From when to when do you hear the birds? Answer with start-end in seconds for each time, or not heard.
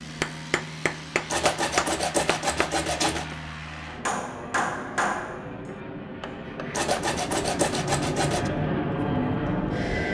not heard.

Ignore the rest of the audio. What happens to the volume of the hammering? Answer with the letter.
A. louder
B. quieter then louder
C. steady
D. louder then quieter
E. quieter
E.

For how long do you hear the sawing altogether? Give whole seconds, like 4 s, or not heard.
4 s.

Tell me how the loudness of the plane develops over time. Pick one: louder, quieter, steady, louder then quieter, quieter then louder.
louder.